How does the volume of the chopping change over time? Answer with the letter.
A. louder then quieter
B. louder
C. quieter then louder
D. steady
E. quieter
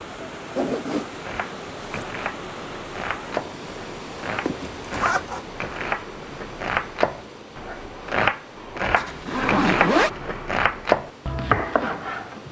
B.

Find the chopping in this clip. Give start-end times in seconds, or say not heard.
1.1-12.4.